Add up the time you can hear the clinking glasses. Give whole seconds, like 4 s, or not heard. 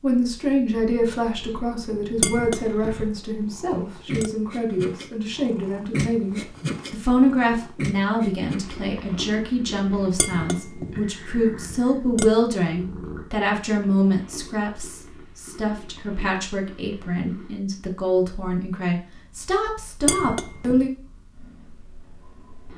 5 s.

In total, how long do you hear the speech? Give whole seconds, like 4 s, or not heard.
21 s.